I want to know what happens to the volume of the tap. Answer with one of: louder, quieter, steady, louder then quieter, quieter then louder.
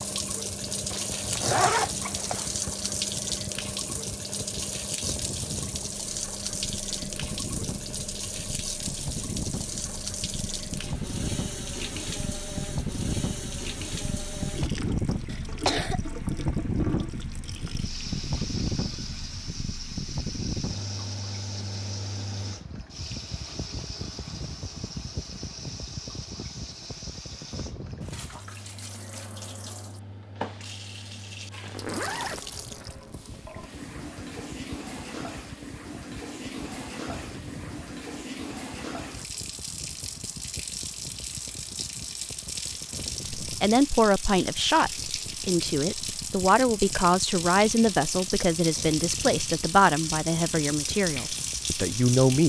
quieter then louder.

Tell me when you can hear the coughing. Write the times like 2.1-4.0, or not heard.
15.2-16.0.